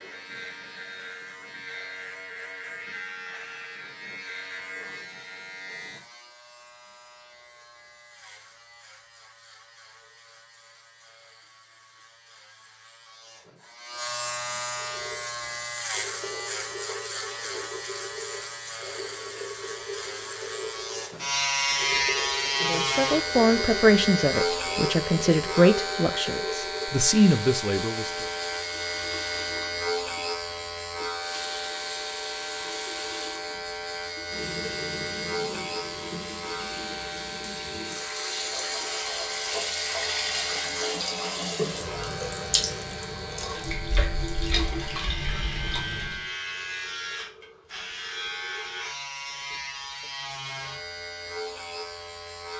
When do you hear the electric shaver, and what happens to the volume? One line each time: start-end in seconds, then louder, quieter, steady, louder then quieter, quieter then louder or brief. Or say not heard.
0.0-52.5 louder then quieter.